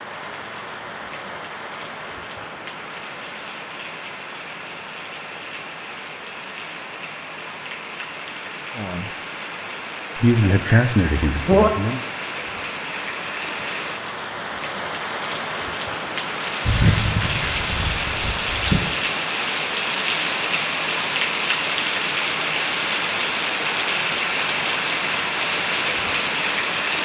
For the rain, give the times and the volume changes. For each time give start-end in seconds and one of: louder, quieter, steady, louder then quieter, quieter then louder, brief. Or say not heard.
0.0-27.0 louder.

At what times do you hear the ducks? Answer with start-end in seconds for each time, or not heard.
10.4-11.7, 16.6-18.9.